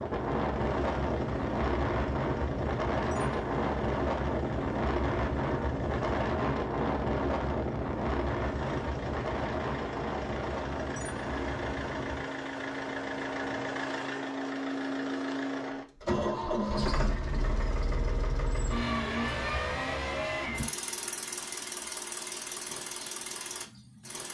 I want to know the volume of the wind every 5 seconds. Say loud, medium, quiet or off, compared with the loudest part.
loud, loud, medium, off, off.